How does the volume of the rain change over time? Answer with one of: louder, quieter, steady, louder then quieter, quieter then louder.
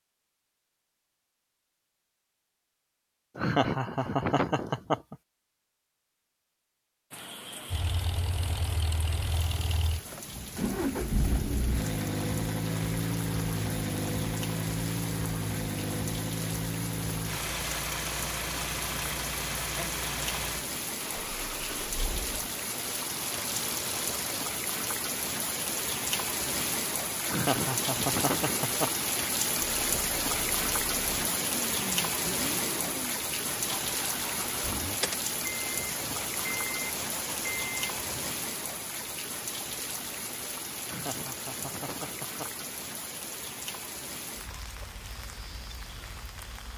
louder then quieter.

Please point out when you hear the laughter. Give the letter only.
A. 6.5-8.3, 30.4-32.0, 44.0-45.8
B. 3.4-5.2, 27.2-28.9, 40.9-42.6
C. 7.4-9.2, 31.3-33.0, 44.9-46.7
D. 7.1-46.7
B.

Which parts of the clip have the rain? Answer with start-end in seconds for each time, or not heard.
7.1-46.7.